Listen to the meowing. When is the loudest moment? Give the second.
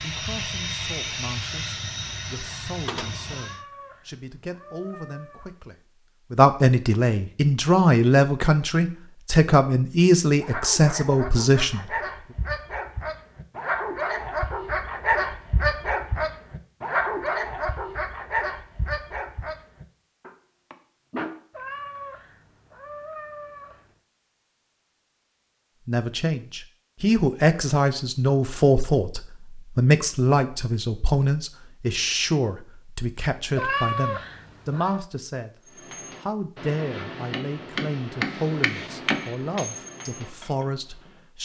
34 s.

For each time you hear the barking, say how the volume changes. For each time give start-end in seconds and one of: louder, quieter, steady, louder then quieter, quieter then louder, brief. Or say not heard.
10.4-21.4 louder then quieter.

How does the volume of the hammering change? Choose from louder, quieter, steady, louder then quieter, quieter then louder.
louder then quieter.